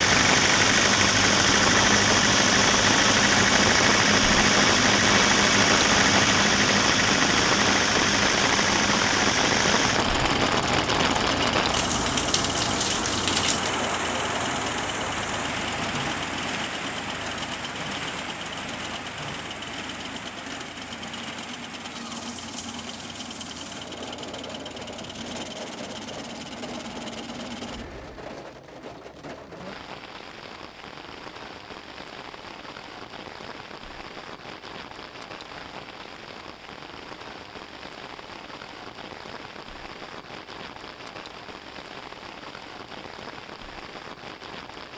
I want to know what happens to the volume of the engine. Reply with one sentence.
The loudness of the engine goes down.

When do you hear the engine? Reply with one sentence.
The engine can be heard from 0.0 to 28.2 s.